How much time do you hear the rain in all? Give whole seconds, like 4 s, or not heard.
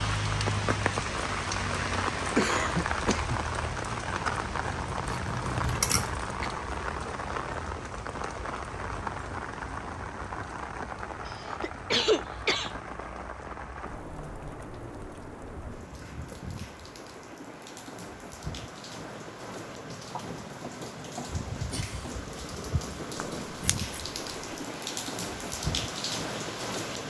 27 s.